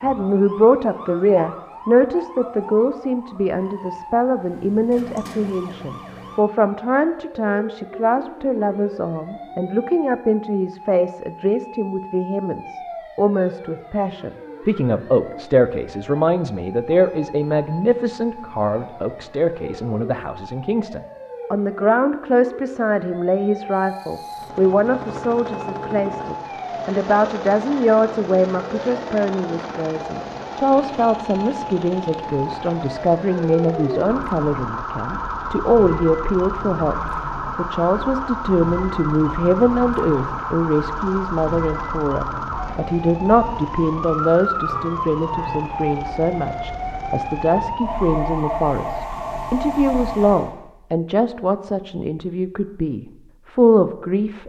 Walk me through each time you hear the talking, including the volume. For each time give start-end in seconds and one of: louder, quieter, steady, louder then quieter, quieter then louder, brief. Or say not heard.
0.0-54.4 steady.